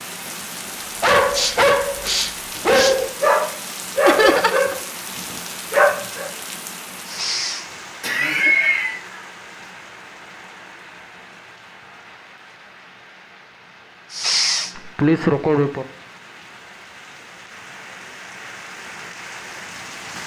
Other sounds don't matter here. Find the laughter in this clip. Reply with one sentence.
You can hear the laughter from 4.0 to 4.8 s, from 8.0 to 9.0 s and from 14.8 to 15.8 s.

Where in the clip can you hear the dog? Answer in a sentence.
The dog can be heard from 1.0 to 6.3 s.